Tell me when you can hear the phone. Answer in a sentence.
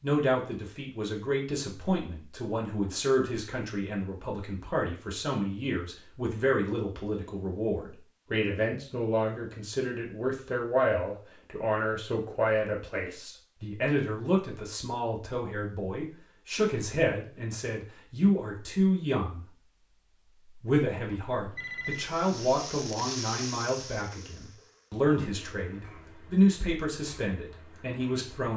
You can hear the phone from 21.1 to 22.1 s.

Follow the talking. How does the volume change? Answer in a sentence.
The loudness of the talking stays about the same.